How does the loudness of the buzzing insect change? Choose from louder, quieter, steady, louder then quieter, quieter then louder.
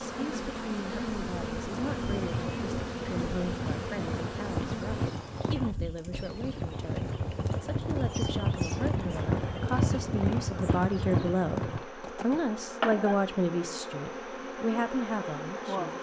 quieter then louder.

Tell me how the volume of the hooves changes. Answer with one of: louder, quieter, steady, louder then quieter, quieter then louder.
louder.